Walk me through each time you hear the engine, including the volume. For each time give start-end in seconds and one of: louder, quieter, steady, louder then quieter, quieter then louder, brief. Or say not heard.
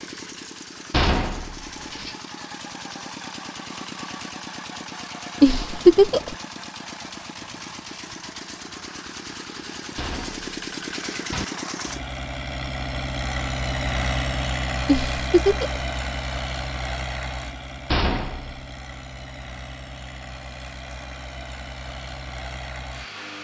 0.0-23.3 louder then quieter.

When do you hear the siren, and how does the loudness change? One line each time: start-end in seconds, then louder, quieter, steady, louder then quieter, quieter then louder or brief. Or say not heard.
not heard.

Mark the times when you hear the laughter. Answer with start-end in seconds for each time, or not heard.
5.4-6.3, 14.8-15.8.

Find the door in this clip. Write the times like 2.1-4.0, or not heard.
0.9-2.1, 9.9-11.4, 17.9-18.6.